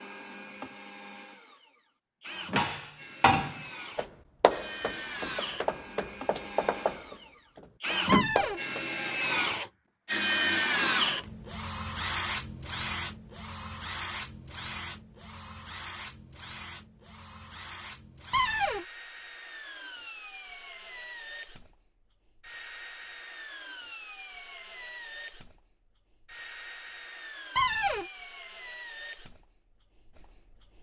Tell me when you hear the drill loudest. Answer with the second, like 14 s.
11 s.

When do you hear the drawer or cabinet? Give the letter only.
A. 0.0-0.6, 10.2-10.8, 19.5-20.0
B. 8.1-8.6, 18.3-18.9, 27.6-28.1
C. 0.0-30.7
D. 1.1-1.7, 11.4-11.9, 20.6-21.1
B.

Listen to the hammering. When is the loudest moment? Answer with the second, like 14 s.
3 s.